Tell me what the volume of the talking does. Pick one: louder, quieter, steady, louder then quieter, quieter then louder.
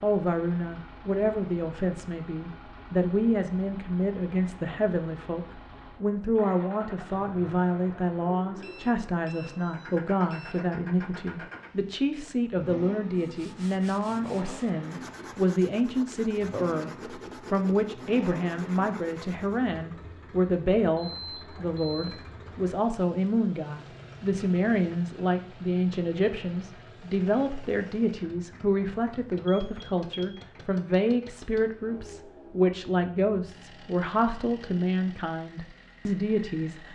steady.